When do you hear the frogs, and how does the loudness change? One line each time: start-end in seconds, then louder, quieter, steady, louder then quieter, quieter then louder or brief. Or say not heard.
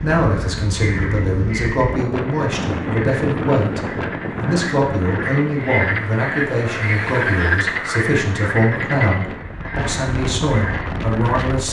0.0-11.6 louder then quieter.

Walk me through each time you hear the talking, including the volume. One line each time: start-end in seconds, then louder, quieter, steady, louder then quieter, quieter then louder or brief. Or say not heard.
0.0-11.6 steady.